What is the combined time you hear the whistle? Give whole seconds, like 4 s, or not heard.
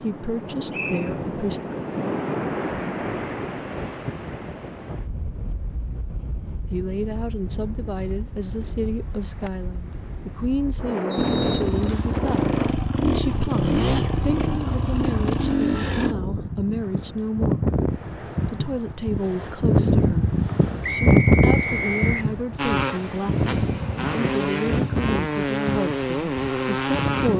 3 s.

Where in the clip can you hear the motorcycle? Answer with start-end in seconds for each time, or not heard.
11.2-16.1, 22.6-27.3.